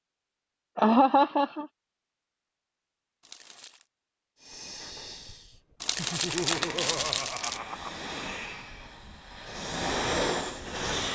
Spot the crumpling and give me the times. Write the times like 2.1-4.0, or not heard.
3.2-3.9, 5.8-7.6.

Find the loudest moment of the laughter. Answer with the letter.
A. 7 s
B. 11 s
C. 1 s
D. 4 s
C.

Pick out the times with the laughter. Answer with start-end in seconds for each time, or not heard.
0.8-1.6, 6.0-8.0.